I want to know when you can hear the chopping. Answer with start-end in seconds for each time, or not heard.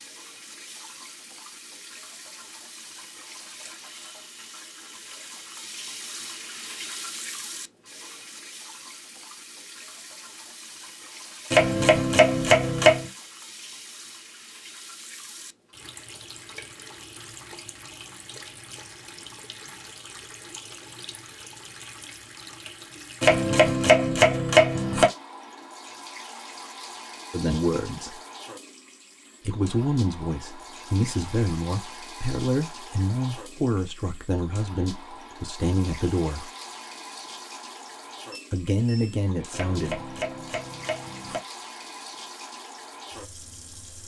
11.5-13.1, 23.2-25.1, 39.5-41.4.